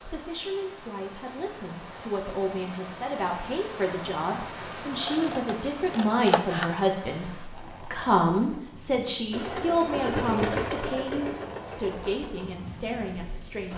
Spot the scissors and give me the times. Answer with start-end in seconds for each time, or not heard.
5.0-6.8.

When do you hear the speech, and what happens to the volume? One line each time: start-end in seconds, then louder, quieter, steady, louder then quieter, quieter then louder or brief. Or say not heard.
0.0-13.7 louder then quieter.